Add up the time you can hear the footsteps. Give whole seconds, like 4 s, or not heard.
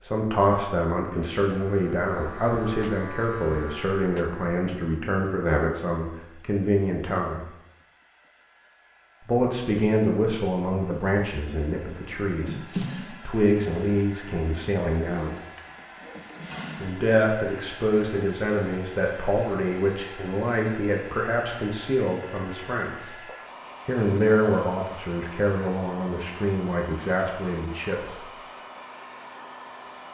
not heard.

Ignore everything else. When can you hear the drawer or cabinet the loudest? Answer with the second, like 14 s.
13 s.